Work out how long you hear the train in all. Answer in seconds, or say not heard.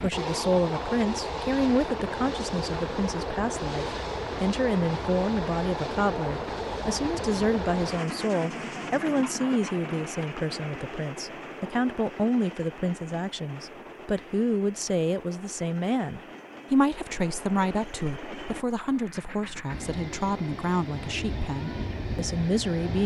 23 s.